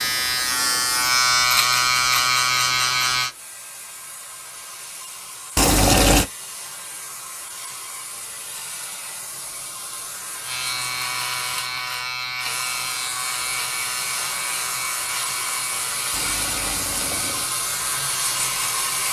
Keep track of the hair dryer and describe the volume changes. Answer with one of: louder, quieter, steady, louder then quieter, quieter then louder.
louder.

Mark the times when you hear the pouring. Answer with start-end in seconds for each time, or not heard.
5.5-6.2, 16.1-17.6.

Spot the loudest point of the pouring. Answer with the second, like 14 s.
6 s.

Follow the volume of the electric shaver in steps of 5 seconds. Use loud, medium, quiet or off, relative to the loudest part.
loud, off, medium, quiet.